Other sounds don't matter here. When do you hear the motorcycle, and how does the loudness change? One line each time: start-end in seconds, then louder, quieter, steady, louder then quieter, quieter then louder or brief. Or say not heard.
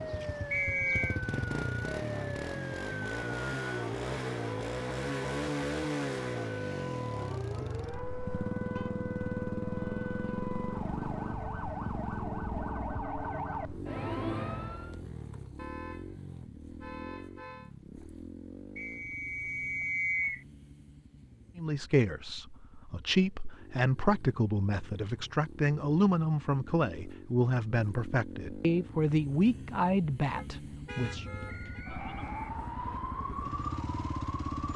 0.0-34.7 quieter then louder.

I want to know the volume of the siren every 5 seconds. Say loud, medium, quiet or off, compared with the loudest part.
loud, loud, loud, off, off, off, loud.